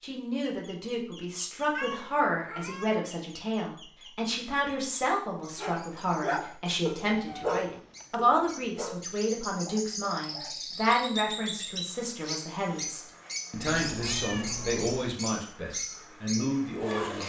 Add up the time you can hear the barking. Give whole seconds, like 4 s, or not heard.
5 s.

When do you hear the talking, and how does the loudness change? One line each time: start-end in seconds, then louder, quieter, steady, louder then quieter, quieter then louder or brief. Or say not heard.
0.0-17.2 steady.